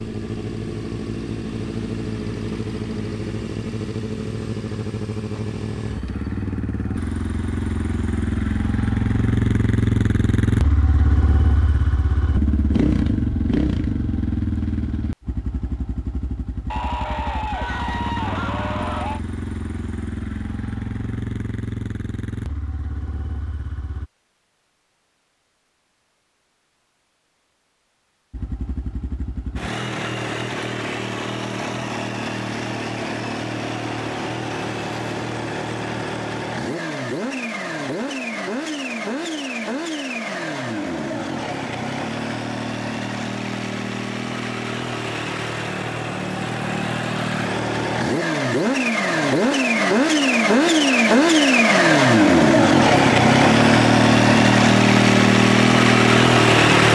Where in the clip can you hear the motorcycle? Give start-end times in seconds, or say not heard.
0.0-24.1, 28.3-56.9.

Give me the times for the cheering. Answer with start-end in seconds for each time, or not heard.
16.7-19.2.